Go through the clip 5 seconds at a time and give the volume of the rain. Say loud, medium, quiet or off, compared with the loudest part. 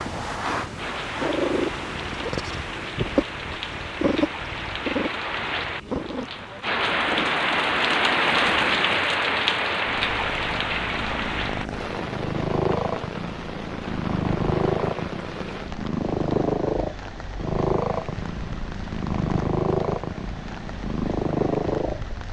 medium, loud, medium, quiet, quiet.